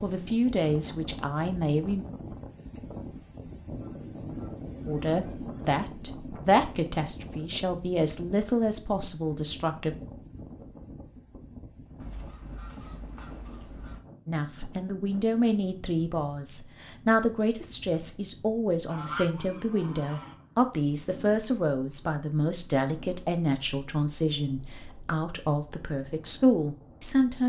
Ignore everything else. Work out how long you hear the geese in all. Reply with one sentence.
You can hear the geese for 6 seconds altogether.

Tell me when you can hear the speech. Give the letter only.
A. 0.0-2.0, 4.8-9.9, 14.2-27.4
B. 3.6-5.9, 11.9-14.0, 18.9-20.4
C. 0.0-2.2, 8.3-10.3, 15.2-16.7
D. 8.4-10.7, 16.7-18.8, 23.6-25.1
A.